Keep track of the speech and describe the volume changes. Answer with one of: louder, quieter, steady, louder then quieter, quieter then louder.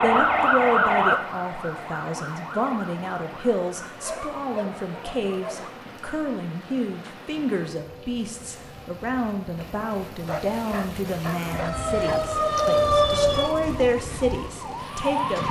steady.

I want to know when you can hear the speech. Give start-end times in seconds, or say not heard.
0.0-15.4.